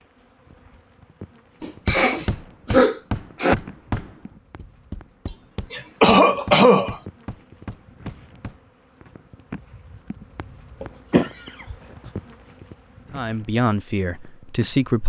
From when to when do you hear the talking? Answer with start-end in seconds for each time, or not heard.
13.1-15.0.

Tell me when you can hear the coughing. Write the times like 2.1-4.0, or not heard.
1.6-3.5, 5.2-7.0, 10.8-12.1.